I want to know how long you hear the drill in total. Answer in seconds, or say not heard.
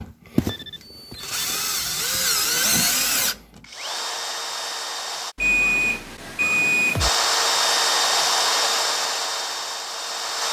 9 s.